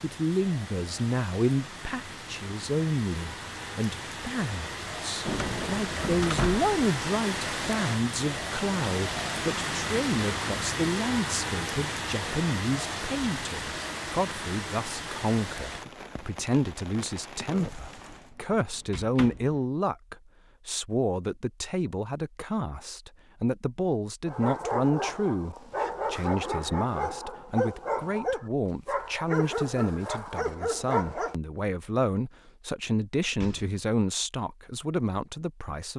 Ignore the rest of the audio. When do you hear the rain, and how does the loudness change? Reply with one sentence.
The rain can be heard from 0.0 to 18.4 s, getting louder then quieter.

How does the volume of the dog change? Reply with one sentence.
The volume of the dog stays about the same.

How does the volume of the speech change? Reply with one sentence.
The loudness of the speech stays about the same.